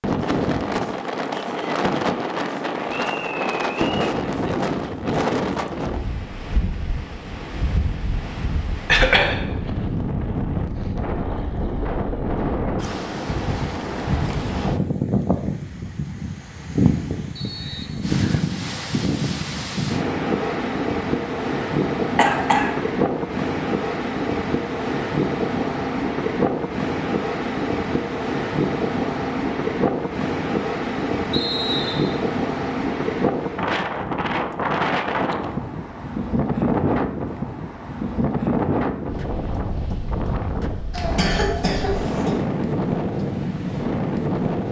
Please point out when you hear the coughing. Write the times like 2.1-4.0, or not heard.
8.8-9.3, 22.1-22.8, 40.9-42.4.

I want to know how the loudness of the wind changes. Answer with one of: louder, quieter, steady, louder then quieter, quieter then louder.
steady.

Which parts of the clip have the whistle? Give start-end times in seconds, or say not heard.
2.9-4.1, 17.4-18.4, 31.3-32.2.